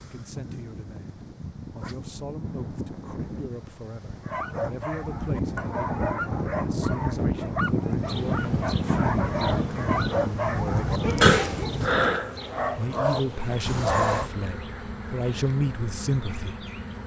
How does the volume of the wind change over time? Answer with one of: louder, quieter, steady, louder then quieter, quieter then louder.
louder.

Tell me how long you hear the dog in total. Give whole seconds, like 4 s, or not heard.
10 s.